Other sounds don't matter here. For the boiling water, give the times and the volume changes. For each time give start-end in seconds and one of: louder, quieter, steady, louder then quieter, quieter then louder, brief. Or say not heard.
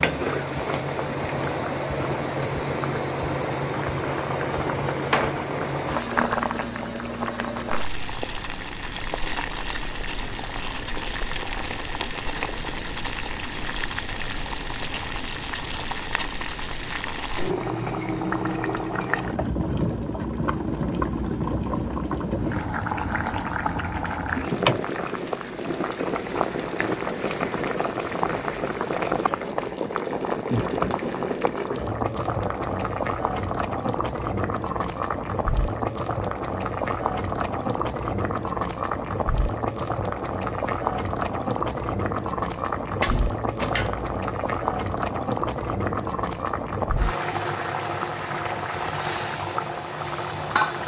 0.0-50.8 steady.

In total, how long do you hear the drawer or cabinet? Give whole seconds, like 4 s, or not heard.
2 s.